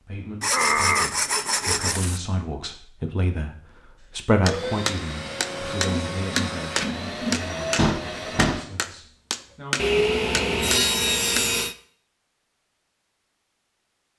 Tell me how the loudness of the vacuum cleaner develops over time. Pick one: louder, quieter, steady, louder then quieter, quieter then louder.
louder.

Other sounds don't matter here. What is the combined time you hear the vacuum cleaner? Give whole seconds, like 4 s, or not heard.
4 s.